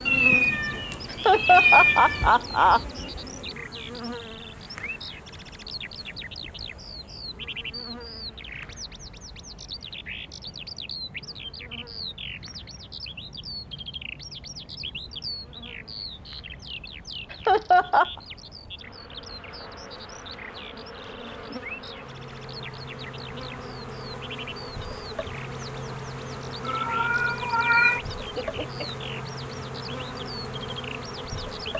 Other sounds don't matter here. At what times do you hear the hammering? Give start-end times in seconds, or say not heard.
not heard.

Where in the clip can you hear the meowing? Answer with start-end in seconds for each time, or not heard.
0.1-2.3, 26.6-28.0.